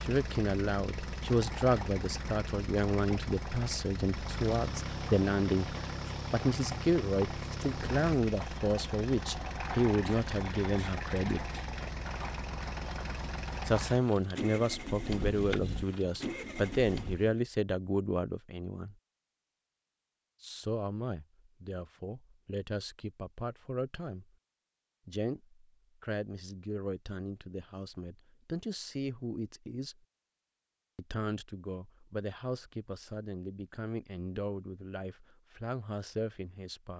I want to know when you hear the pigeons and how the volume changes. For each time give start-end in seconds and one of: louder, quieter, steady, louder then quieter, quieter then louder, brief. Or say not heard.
not heard.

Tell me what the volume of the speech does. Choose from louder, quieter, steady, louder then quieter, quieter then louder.
quieter.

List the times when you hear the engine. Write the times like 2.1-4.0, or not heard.
0.0-17.4.